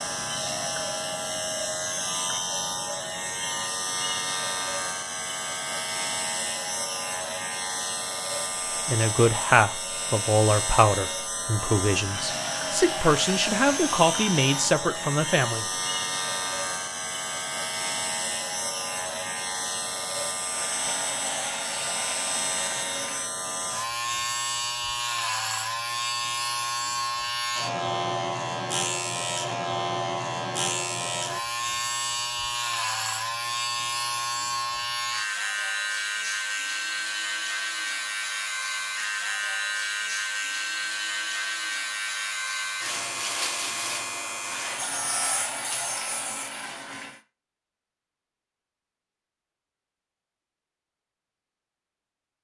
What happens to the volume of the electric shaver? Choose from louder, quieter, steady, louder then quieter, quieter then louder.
steady.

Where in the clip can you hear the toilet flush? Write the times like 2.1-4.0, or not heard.
12.1-14.7, 20.5-23.3, 44.5-47.2.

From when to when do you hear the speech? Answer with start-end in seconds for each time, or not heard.
8.8-15.7.